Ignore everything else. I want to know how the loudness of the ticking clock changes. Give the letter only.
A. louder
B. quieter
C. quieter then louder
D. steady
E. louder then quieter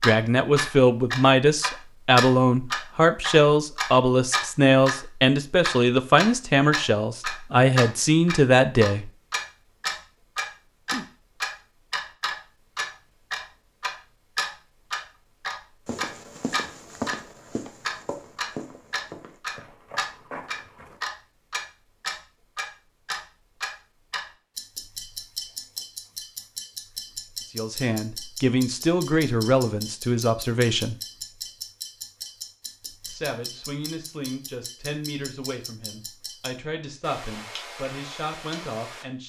B.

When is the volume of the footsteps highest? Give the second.
17 s.